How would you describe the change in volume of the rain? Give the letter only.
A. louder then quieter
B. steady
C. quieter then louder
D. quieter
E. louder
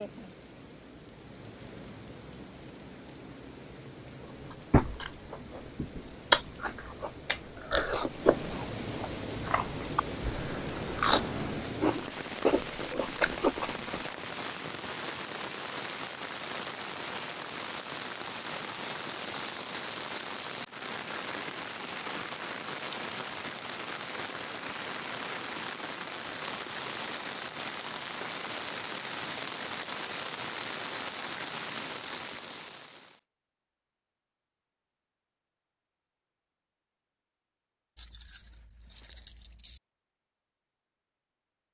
E.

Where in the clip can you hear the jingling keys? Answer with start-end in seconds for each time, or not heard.
10.2-11.7, 38.0-39.8.